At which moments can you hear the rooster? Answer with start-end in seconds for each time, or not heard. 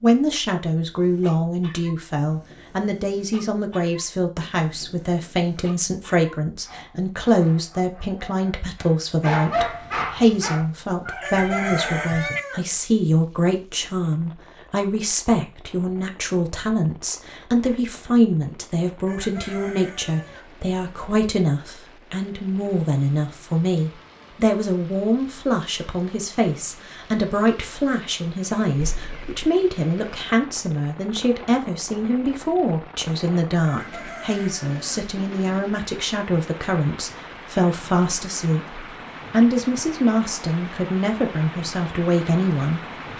11.2-12.6, 19.1-20.4, 33.6-35.0.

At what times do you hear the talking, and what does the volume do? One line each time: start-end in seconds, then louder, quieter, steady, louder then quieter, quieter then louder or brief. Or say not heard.
0.0-43.1 steady.